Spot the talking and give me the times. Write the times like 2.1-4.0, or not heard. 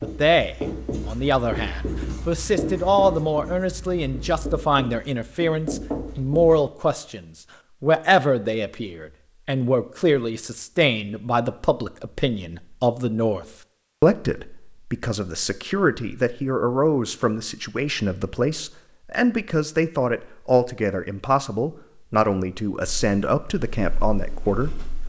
0.0-25.0.